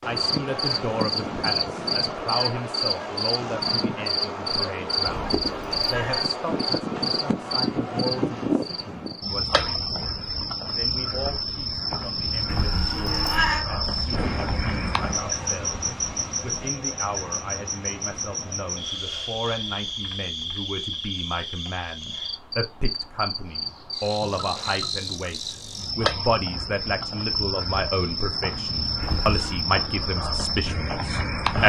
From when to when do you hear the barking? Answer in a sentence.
The barking can't be heard in this clip.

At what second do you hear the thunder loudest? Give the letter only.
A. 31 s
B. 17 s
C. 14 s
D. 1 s
C.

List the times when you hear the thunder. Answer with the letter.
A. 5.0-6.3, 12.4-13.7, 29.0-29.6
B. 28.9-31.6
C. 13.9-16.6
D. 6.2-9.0
C.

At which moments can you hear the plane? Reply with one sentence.
You can't hear the plane here.